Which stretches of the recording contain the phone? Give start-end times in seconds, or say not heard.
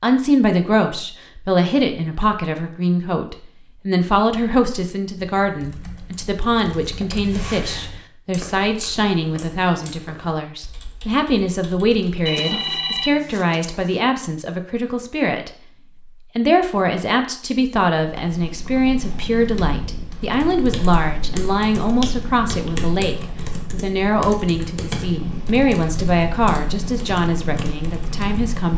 12.2-14.0.